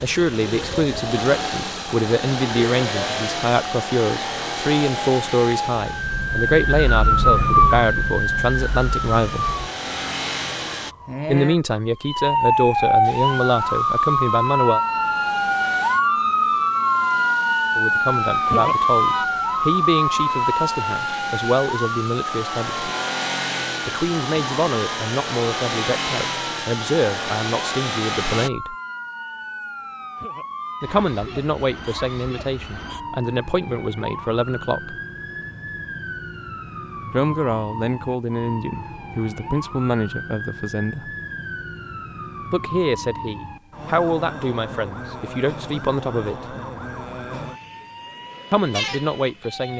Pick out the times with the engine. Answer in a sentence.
The engine can be heard from 0.0 to 10.9 s and from 13.0 to 28.5 s.